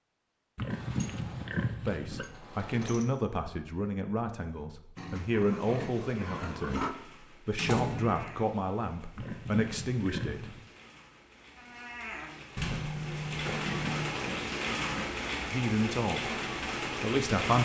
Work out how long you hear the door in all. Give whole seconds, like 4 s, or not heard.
5 s.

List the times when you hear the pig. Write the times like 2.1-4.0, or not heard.
0.6-2.4, 5.0-7.0, 9.2-10.7, 13.4-15.2.